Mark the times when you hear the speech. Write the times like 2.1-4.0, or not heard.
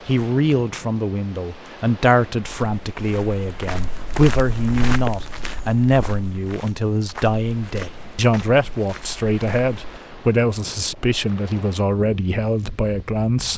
0.1-13.5.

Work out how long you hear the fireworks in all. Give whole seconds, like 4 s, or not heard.
not heard.